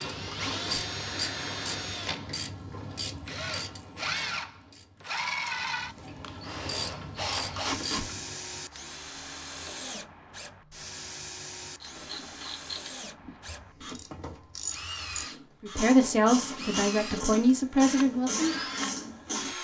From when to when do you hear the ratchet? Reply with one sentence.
You can hear the ratchet from 0.0 to 8.4 s and from 11.8 to 19.5 s.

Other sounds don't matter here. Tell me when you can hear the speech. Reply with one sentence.
The speech can be heard from 15.6 to 18.5 s.